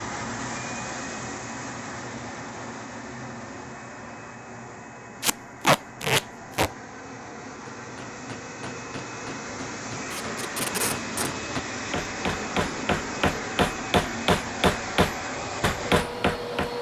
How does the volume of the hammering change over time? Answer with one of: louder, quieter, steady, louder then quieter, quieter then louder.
louder.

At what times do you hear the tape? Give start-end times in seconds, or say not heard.
5.2-6.7, 10.1-11.3.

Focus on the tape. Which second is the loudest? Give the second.
6 s.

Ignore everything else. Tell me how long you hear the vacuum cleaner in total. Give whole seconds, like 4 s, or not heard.
17 s.